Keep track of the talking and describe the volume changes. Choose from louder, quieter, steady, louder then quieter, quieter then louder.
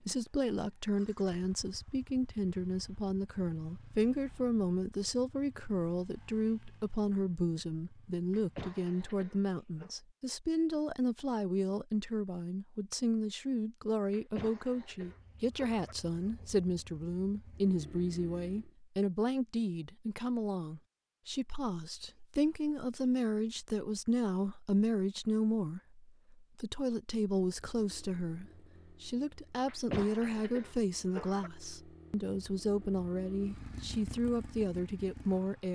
steady.